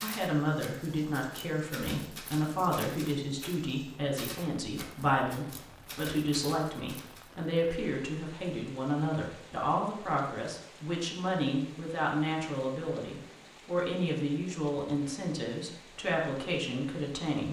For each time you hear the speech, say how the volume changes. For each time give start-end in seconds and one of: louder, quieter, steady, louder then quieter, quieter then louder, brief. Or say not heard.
0.0-17.4 steady.